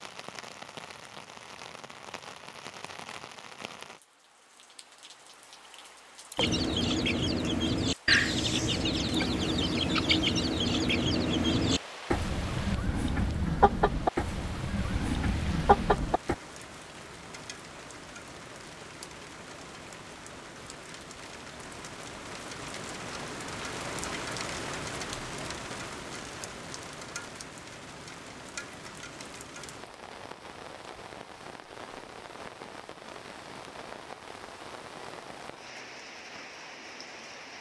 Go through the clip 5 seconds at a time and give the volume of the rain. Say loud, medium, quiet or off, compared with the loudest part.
medium, medium, medium, medium, loud, loud, medium, medium.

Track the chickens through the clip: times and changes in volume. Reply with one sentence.
The chickens can be heard from 6.3 to 16.4 s, at a steady volume.